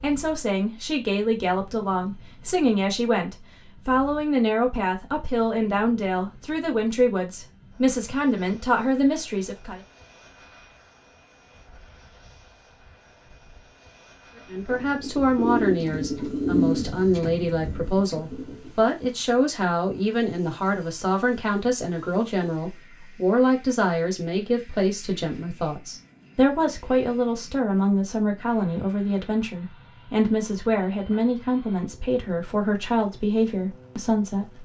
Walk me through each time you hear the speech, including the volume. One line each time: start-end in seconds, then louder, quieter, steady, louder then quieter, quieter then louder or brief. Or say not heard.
0.0-9.8 steady
14.4-34.5 steady.